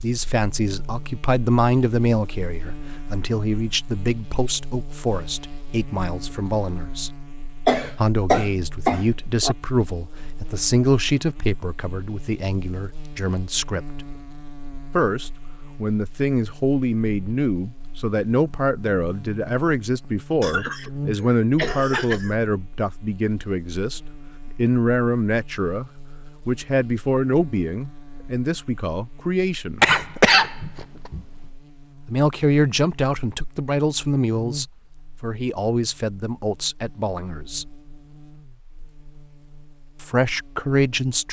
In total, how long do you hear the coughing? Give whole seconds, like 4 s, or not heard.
5 s.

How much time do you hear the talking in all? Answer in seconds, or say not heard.
35 s.